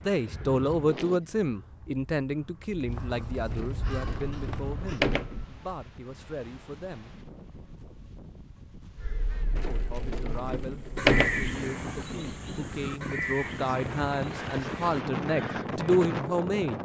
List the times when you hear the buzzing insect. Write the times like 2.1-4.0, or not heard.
not heard.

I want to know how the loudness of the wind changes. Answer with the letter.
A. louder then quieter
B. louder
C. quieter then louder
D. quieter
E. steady
B.